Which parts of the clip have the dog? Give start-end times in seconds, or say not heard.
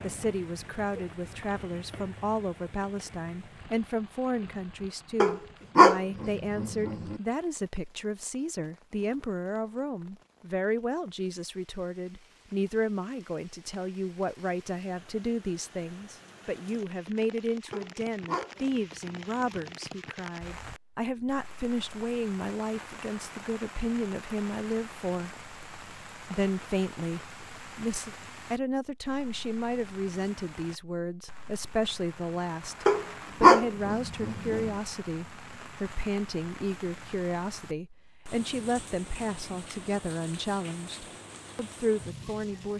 5.2-7.2, 17.7-19.4, 32.9-34.7.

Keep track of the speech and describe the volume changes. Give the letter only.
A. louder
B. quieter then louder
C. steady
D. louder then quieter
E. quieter
C.